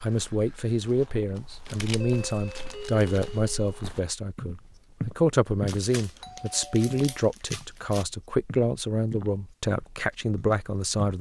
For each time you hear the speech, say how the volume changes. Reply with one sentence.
The speech can be heard from 0.0 to 11.1 s, at a steady volume.